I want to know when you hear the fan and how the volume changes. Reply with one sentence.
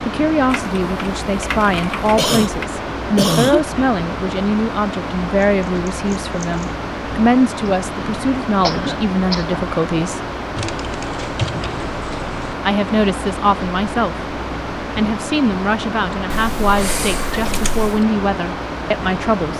You can hear the fan from 0.0 to 19.5 s, at a steady volume.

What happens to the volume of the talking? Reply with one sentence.
The loudness of the talking stays about the same.